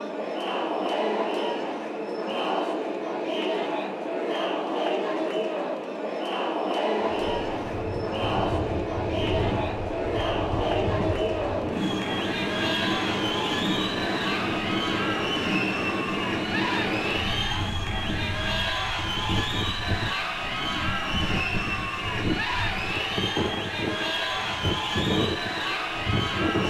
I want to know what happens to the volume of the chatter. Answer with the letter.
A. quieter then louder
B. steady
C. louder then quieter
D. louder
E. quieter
B.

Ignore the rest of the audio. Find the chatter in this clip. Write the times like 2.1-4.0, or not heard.
0.0-26.6.